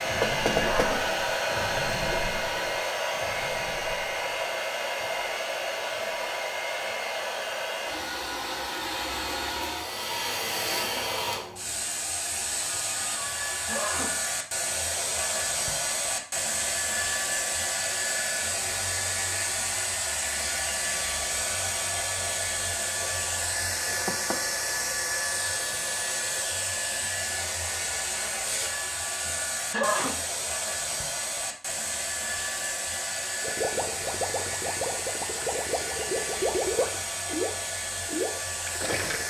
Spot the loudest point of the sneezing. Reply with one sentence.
The loudest moment of the sneezing is at 30 seconds.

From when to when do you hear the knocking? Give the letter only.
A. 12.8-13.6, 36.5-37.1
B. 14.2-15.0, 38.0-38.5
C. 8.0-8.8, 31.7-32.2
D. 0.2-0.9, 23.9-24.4
D.